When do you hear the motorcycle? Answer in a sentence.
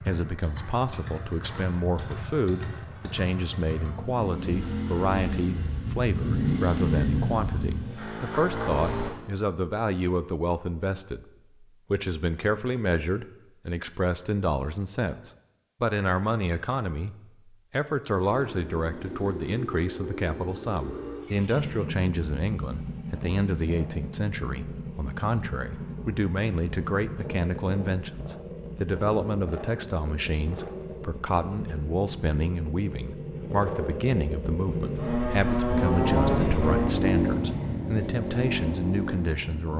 You can hear the motorcycle from 0.0 to 9.1 s and from 18.2 to 39.7 s.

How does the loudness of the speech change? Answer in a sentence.
The loudness of the speech stays about the same.